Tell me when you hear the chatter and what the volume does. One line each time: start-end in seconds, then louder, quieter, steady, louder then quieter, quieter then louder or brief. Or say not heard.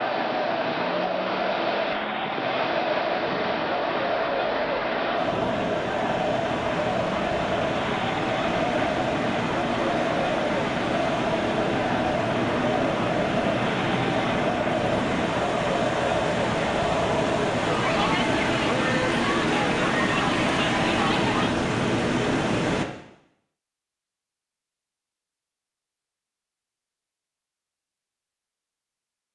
0.0-21.5 steady.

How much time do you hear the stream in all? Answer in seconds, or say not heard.
23 s.